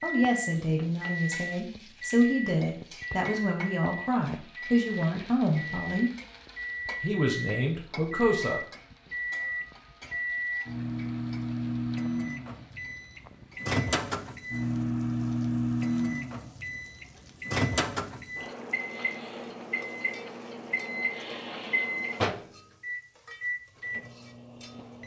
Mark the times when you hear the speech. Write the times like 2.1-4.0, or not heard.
0.0-6.1, 7.0-8.6.